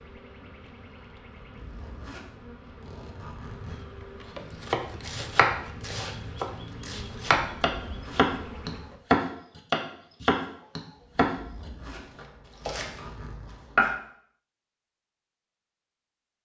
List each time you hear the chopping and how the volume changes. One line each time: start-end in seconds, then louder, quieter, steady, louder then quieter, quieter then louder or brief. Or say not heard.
4.6-13.9 louder then quieter.